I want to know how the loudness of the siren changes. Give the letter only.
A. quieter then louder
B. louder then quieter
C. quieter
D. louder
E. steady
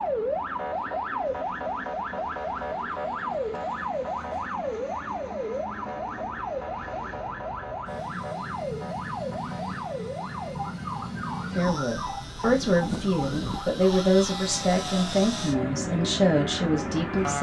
C.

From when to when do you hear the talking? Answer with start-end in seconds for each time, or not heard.
11.5-17.3.